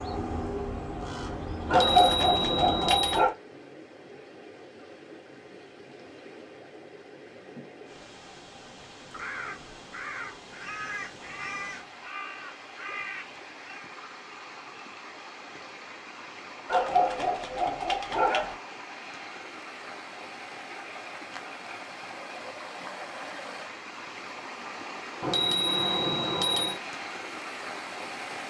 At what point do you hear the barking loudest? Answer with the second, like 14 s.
2 s.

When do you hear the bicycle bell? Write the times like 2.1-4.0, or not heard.
1.6-3.2, 25.2-26.8.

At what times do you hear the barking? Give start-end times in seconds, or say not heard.
1.7-3.4, 16.6-18.6.